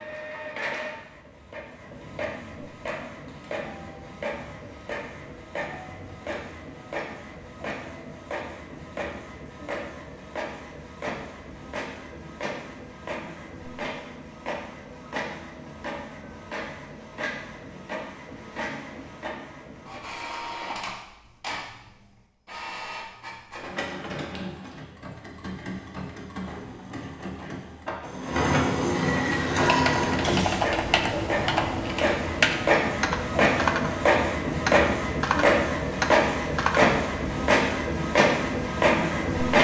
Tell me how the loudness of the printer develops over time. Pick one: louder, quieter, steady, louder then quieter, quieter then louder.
louder.